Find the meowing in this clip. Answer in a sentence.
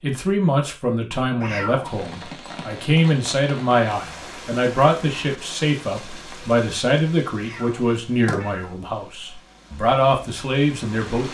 You can hear the meowing from 1.4 to 2.3 s and from 7.3 to 8.8 s.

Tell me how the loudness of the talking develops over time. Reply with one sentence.
The volume of the talking stays about the same.